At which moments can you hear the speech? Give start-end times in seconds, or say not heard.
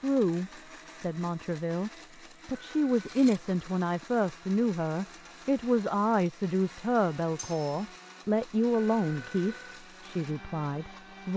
0.0-11.3.